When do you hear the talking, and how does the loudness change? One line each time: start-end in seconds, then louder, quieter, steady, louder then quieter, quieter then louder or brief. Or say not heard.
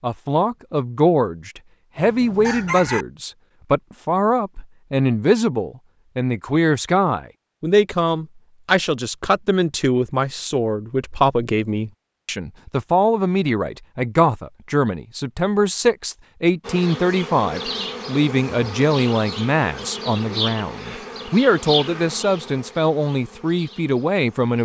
0.0-24.6 steady.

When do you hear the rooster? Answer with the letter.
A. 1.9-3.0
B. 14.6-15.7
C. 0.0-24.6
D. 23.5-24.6
A.